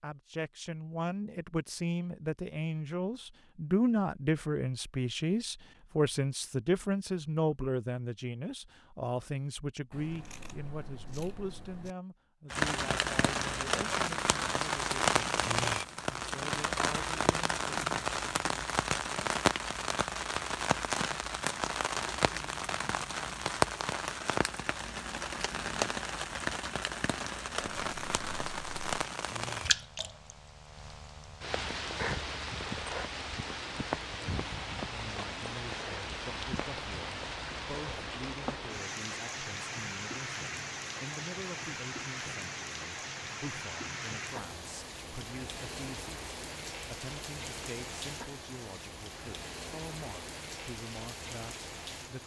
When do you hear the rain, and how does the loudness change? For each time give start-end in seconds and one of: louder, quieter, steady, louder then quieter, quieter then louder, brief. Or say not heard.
12.5-52.2 quieter.